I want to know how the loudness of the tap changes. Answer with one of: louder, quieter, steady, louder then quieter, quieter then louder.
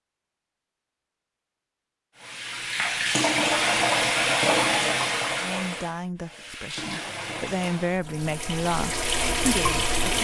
quieter then louder.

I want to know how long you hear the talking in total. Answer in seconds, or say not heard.
5 s.